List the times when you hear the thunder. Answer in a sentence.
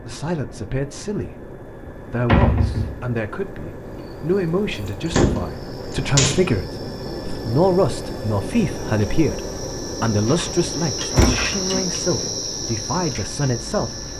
The thunder can't be heard in this clip.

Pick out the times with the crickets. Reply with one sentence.
The crickets can be heard from 3.8 to 14.1 s.